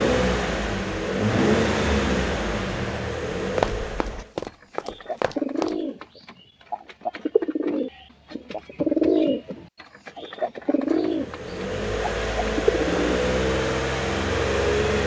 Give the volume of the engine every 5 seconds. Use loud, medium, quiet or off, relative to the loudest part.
loud, off, loud.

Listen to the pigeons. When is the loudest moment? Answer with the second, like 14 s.
9 s.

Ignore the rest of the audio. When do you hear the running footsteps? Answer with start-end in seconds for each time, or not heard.
3.5-5.8.